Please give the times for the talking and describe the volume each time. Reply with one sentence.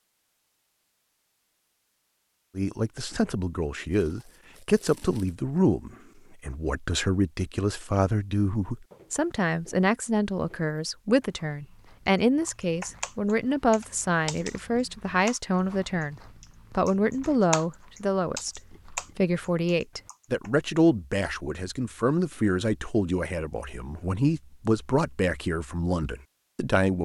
The talking can be heard from 2.5 to 27.0 s, at a steady volume.